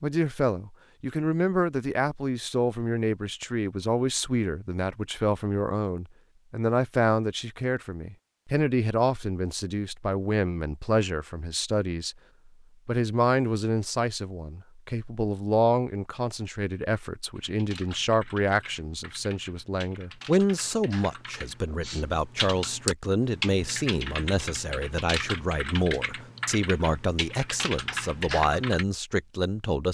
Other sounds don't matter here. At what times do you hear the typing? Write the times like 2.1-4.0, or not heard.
17.4-28.9.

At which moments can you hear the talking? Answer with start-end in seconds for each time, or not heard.
0.0-12.2, 12.8-29.8.